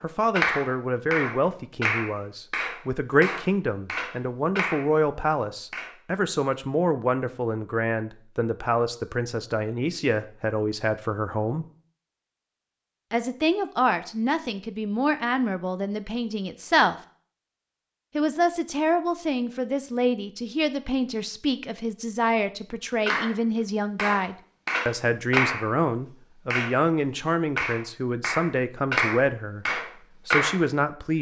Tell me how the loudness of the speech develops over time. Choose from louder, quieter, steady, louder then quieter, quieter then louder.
steady.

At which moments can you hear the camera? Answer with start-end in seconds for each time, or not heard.
not heard.